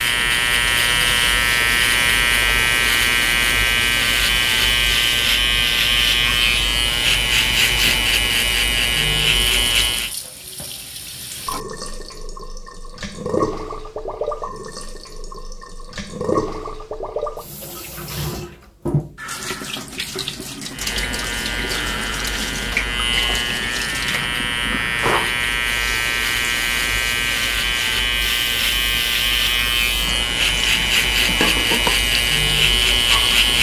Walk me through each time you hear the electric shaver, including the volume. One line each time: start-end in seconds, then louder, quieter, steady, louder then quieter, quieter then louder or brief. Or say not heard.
0.0-10.2 steady
20.7-33.5 louder.